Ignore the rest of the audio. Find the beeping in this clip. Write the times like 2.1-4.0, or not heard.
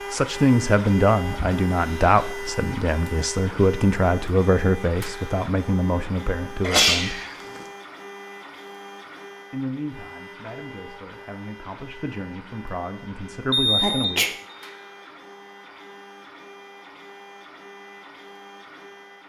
13.5-14.1.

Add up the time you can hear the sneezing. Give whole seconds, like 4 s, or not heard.
3 s.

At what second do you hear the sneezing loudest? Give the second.
7 s.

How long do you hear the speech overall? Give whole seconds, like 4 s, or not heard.
12 s.